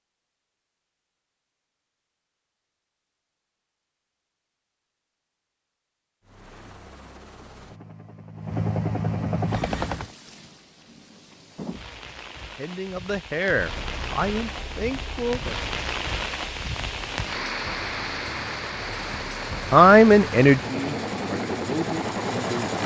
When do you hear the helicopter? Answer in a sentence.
You can hear the helicopter from 6.2 to 10.2 s and from 13.6 to 22.8 s.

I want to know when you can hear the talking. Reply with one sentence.
You can hear the talking from 12.6 to 15.6 s and from 19.7 to 22.8 s.